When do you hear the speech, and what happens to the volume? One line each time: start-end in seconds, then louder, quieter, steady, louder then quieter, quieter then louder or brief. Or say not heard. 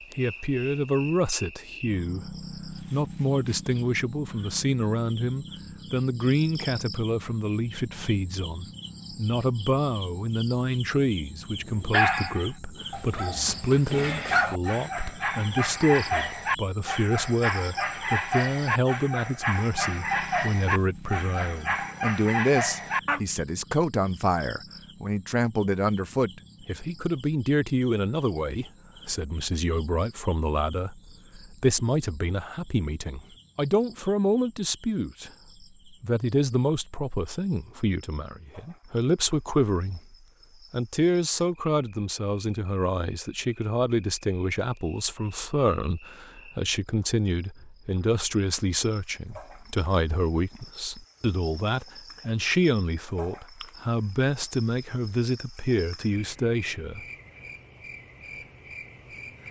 0.1-57.0 steady.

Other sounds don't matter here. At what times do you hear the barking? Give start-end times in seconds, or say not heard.
11.7-23.2.